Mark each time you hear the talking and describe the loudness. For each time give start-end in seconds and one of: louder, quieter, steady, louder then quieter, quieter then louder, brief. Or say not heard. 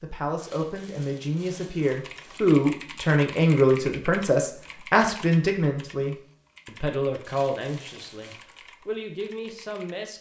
0.0-10.1 louder then quieter.